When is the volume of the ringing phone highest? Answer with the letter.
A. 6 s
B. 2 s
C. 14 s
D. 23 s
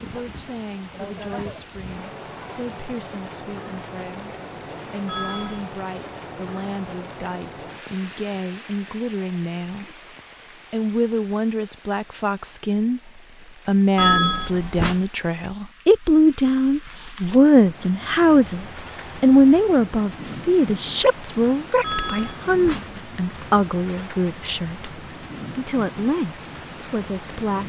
C.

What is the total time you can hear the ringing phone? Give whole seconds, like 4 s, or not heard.
3 s.